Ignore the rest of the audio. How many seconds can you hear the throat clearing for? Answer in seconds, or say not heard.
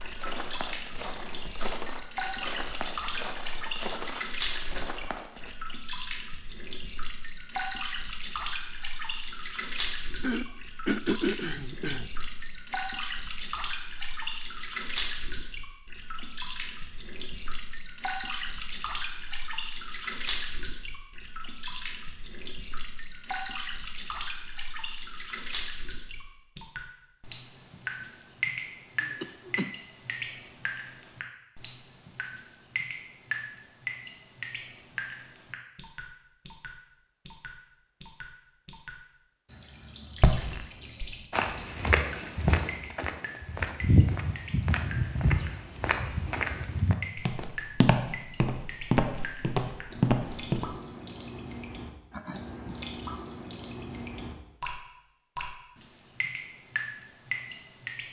3 s.